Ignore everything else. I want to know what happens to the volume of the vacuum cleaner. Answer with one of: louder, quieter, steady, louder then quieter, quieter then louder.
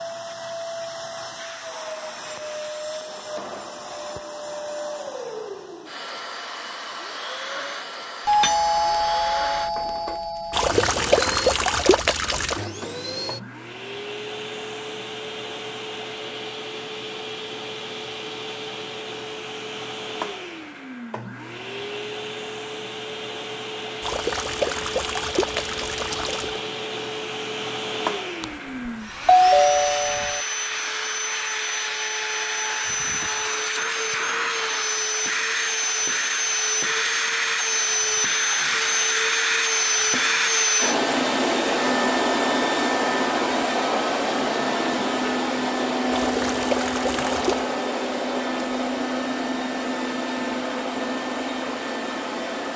louder.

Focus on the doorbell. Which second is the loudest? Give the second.
29 s.